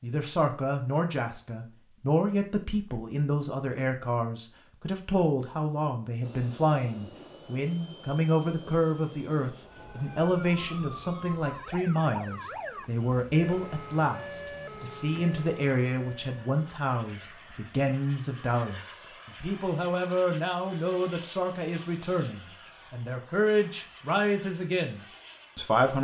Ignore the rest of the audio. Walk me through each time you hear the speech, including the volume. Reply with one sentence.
You can hear the speech from 0.0 to 25.9 s, at a steady volume.